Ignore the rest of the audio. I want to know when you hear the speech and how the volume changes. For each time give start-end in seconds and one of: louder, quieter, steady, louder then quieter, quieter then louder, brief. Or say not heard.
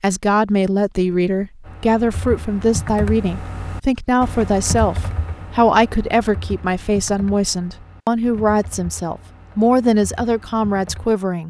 0.0-11.4 steady.